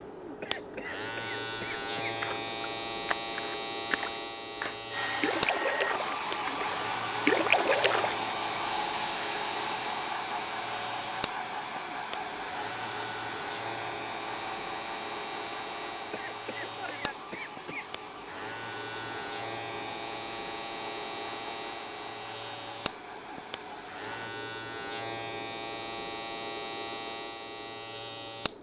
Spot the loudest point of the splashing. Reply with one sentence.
The volume of the splashing peaks at 7 seconds.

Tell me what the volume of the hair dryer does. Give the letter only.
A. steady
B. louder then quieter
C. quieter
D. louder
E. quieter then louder
C.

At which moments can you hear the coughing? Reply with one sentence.
You can hear the coughing from 0.4 to 2.1 s and from 16.1 to 17.9 s.